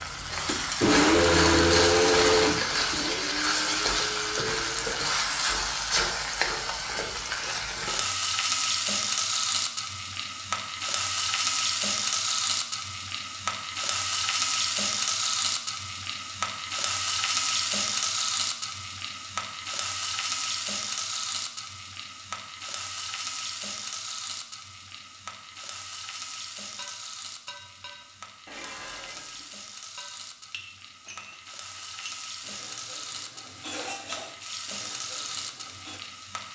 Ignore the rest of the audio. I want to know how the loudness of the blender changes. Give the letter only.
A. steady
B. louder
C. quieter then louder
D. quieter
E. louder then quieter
D.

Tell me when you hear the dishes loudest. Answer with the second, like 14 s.
34 s.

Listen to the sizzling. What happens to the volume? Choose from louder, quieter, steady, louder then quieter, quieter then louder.
quieter.